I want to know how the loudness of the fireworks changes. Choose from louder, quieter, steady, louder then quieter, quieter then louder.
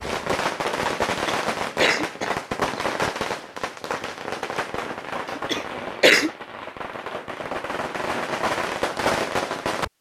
quieter then louder.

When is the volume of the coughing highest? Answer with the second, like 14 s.
6 s.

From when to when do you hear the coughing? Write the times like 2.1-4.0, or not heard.
1.1-2.9, 5.3-6.3.